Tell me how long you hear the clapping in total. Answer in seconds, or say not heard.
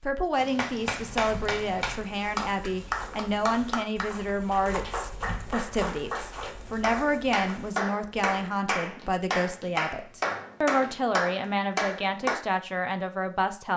12 s.